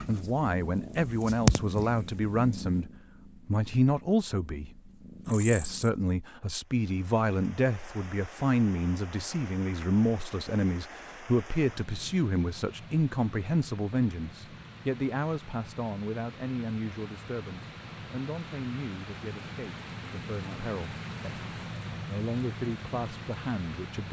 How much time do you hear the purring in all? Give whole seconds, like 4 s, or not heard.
6 s.